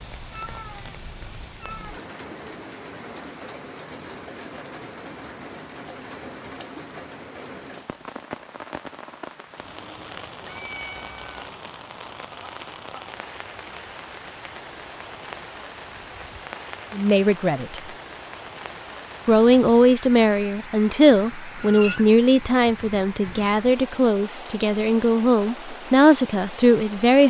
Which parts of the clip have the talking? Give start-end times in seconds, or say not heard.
16.9-17.8, 19.2-27.2.